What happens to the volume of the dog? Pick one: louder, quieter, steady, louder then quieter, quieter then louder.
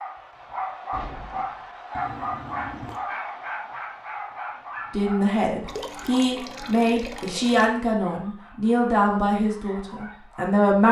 quieter.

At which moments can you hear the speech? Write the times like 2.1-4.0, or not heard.
4.9-10.8.